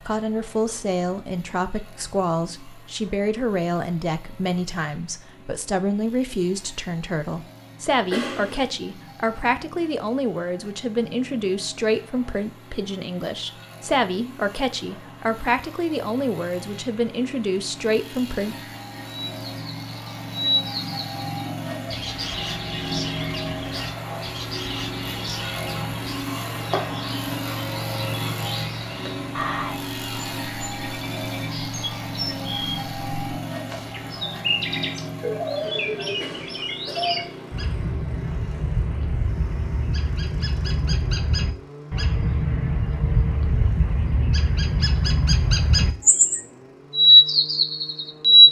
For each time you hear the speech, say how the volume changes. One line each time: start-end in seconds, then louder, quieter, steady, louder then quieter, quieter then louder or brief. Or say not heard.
0.1-18.6 steady.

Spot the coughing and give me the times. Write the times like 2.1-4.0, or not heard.
8.1-8.7, 36.1-37.1.